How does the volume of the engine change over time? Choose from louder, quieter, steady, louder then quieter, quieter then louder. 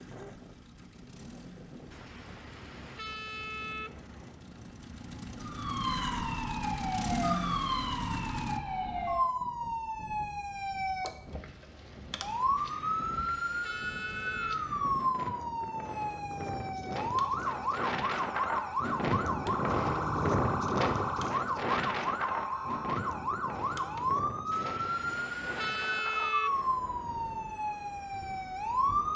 louder.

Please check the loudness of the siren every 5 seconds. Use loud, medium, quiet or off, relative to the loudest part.
off, loud, loud, loud, loud, loud.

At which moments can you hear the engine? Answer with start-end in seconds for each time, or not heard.
0.0-8.6.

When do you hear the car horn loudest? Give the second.
26 s.